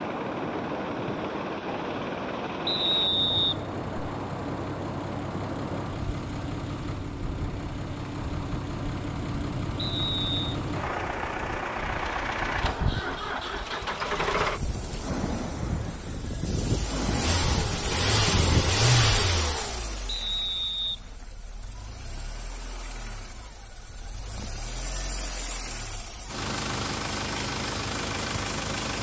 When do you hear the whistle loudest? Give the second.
3 s.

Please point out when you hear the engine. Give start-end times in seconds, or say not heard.
0.0-28.9.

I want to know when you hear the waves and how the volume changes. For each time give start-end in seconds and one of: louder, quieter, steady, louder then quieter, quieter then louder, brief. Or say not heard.
0.0-19.1 quieter then louder.